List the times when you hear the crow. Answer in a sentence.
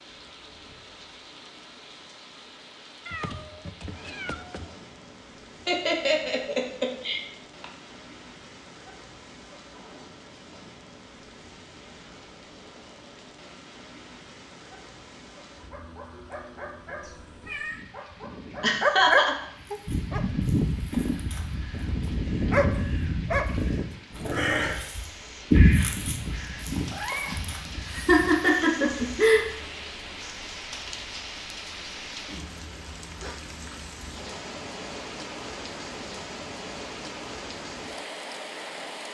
The crow can be heard from 19.4 to 29.2 s.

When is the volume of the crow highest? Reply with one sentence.
The volume of the crow peaks at 26 seconds.